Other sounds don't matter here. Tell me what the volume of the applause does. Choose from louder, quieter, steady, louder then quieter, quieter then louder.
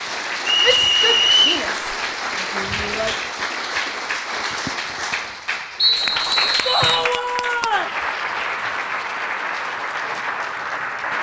steady.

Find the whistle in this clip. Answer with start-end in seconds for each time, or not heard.
0.5-1.6, 5.8-7.1.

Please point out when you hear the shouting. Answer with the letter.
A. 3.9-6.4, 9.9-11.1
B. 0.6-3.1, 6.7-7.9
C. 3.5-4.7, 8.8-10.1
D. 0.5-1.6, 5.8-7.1
B.